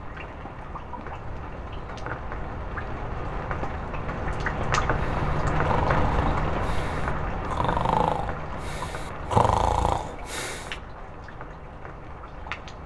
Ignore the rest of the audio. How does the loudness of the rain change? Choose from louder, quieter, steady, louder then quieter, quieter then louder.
louder then quieter.